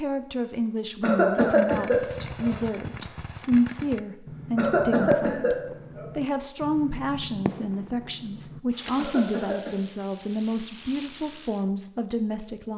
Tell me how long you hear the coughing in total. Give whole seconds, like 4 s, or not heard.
4 s.